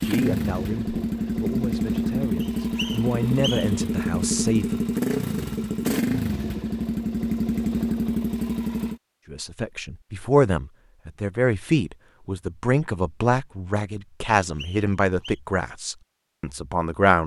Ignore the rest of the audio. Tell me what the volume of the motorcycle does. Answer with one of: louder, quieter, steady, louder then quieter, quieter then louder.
steady.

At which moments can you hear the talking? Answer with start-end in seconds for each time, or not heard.
0.0-4.8, 9.3-17.2.